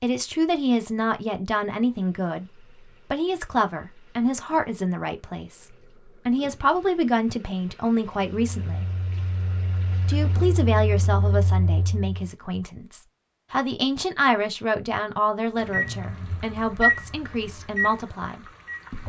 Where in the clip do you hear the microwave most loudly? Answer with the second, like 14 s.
17 s.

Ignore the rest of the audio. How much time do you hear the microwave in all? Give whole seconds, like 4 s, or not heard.
7 s.